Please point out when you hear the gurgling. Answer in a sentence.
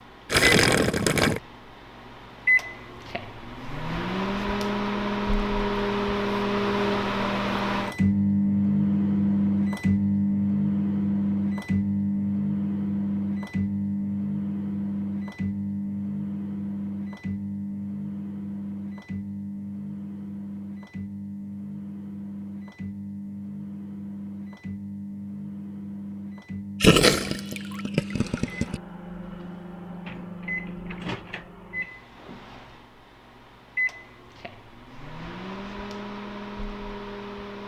You can hear the gurgling from 0.3 to 1.4 s and from 26.8 to 28.8 s.